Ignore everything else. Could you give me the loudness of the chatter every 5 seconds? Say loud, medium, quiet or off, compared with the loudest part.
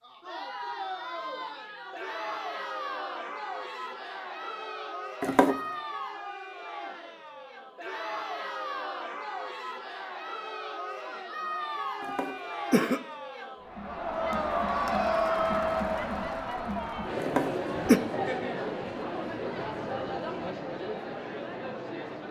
medium, medium, loud, loud, medium.